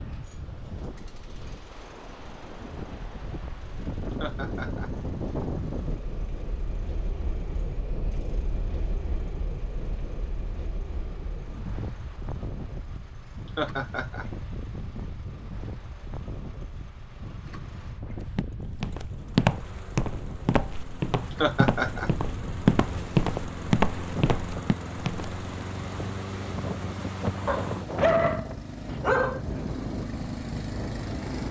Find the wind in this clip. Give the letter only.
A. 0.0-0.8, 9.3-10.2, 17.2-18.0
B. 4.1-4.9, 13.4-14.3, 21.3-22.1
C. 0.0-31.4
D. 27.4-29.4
C.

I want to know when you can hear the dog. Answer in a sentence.
The dog can be heard from 27.4 to 29.4 s.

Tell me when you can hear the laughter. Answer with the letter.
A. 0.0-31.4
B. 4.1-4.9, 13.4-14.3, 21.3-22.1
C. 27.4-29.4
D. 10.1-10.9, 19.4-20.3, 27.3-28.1
B.